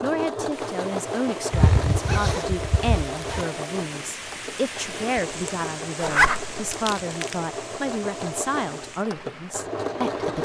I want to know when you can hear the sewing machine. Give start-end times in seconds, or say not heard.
0.0-10.3.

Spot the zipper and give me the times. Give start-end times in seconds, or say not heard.
1.5-3.5, 6.0-6.5.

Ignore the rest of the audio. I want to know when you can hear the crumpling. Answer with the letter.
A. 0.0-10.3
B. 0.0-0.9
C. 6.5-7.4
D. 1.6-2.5
C.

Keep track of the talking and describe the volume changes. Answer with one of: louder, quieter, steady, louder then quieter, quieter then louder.
steady.